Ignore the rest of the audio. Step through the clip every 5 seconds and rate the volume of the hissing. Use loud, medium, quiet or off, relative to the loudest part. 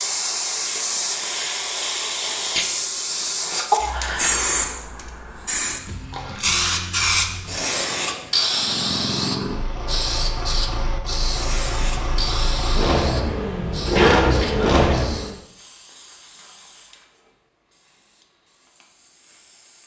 loud, loud, medium, quiet.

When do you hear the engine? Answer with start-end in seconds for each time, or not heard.
8.5-15.4.